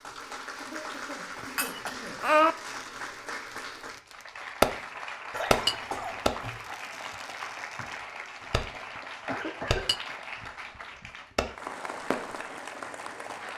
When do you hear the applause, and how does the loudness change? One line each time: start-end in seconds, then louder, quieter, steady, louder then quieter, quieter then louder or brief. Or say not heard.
0.0-13.5 steady.